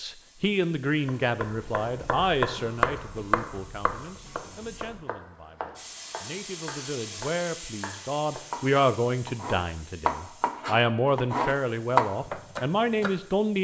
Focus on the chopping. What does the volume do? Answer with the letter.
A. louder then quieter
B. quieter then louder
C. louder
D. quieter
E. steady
B.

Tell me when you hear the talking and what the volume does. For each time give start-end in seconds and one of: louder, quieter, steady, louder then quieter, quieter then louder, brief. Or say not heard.
0.0-13.5 quieter then louder.